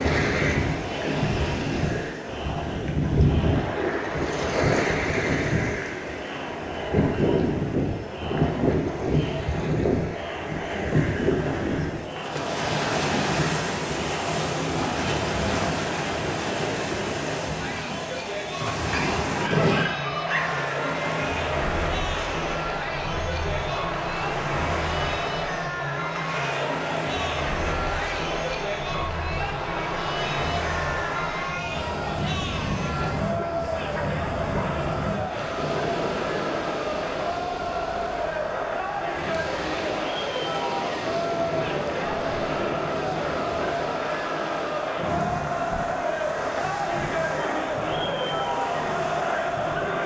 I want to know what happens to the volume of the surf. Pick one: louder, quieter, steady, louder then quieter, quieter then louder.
quieter.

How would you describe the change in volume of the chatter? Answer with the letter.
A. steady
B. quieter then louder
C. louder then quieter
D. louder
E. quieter
D.